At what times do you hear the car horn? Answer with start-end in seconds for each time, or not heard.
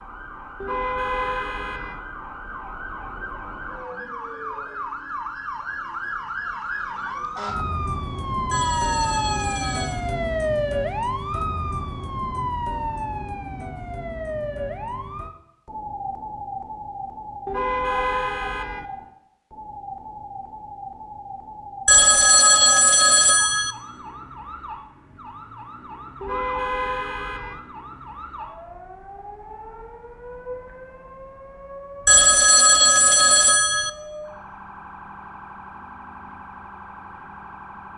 0.6-2.0, 17.4-18.9, 26.2-27.6.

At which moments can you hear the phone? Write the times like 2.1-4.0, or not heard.
8.5-10.0, 21.9-23.8, 32.0-33.9.